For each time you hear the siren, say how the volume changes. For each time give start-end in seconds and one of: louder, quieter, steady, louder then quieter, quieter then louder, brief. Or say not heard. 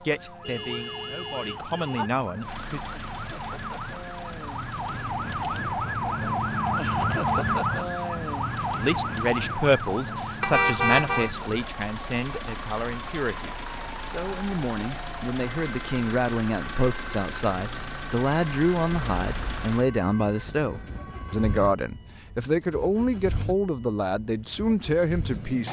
0.0-21.8 louder then quieter.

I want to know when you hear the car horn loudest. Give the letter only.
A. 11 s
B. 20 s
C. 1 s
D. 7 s
A.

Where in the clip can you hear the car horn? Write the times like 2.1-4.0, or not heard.
0.4-2.1, 10.4-11.3, 18.9-19.8.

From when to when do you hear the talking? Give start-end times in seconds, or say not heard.
0.0-2.8, 8.8-25.6.